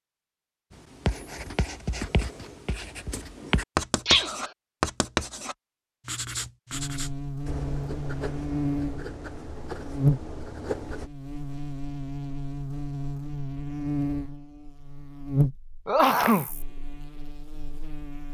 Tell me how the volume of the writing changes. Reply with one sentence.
The loudness of the writing goes up, then down.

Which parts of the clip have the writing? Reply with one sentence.
The writing can be heard from 0.7 to 11.1 s.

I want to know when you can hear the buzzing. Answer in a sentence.
The buzzing can be heard from 6.7 to 18.2 s.